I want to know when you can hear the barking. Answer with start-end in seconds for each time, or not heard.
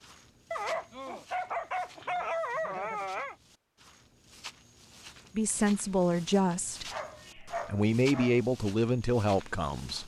0.5-3.4, 6.9-8.4.